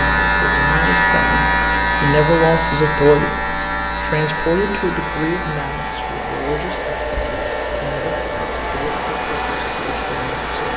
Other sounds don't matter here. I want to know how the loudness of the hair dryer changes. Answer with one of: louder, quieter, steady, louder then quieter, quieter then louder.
louder.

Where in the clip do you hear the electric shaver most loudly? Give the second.
1 s.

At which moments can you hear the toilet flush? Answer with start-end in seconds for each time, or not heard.
not heard.